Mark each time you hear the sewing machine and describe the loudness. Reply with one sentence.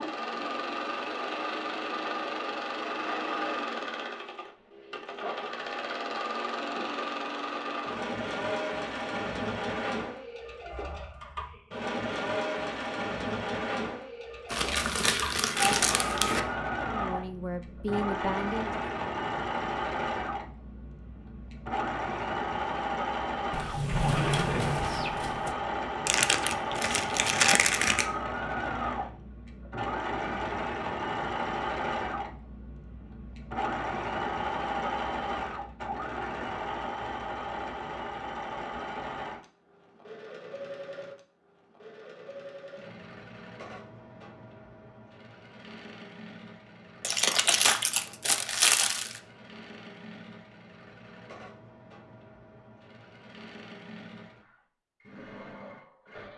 You can hear the sewing machine from 0.0 to 56.3 s, getting quieter.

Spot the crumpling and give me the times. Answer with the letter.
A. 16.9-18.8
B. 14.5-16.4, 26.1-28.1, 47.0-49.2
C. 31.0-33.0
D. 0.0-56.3
B.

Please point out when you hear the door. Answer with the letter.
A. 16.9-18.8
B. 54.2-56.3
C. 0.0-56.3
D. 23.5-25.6
D.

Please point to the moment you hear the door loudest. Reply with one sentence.
The volume of the door peaks at 24 seconds.